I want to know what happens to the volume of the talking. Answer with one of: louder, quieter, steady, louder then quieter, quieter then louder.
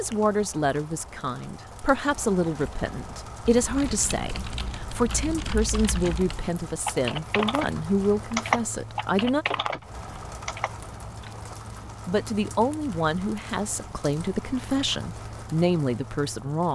steady.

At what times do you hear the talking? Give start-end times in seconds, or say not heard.
0.0-9.4, 12.1-16.7.